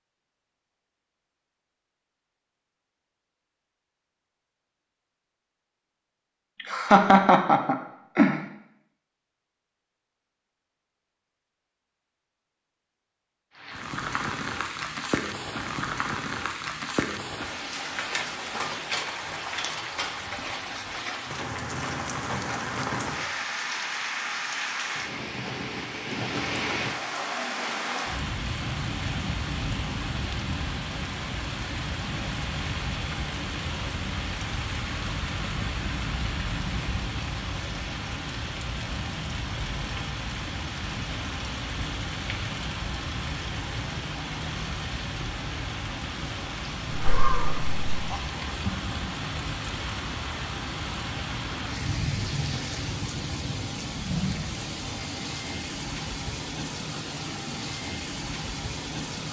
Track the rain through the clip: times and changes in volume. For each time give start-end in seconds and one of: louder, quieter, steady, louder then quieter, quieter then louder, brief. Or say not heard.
13.6-59.2 steady.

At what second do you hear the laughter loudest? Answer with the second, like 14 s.
7 s.